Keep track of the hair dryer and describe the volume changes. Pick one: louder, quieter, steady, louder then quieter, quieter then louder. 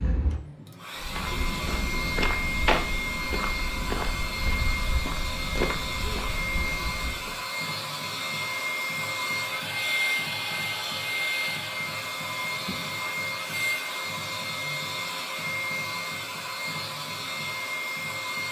steady.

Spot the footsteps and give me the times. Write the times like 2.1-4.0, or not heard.
1.0-7.4.